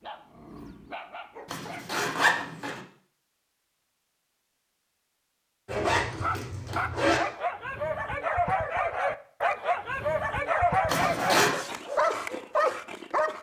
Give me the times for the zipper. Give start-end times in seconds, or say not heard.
1.4-2.8, 5.7-7.2, 10.8-11.6.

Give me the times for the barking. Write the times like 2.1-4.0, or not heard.
0.0-2.0, 6.1-13.3.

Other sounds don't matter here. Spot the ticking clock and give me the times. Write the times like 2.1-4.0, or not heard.
not heard.